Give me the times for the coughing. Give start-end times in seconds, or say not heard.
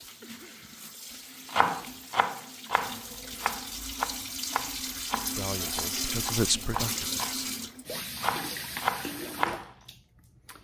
0.2-0.8.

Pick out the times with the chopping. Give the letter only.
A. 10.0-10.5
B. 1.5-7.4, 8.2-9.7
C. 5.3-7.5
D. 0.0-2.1
B.